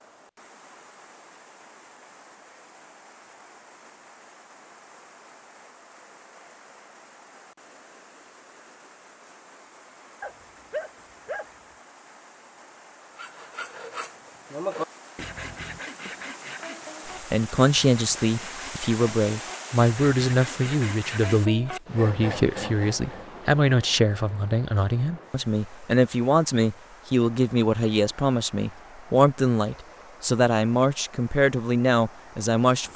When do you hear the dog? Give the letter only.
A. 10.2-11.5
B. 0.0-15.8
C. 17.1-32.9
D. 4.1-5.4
A.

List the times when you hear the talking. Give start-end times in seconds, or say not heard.
17.1-32.9.